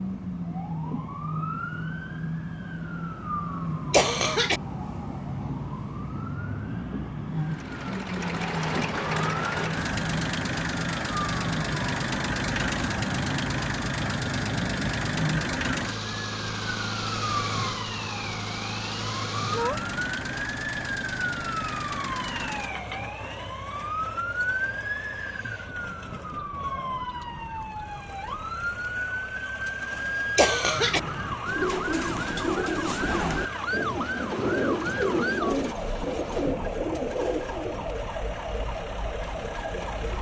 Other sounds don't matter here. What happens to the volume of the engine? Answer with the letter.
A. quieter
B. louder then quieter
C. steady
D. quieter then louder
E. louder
A.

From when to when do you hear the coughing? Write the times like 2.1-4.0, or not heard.
3.9-4.6, 30.4-31.0.